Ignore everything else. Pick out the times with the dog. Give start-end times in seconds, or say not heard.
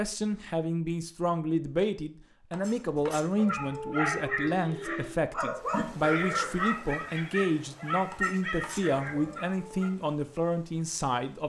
3.4-9.9.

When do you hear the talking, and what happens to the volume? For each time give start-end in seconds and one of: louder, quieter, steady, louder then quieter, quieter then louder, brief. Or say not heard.
0.0-11.4 steady.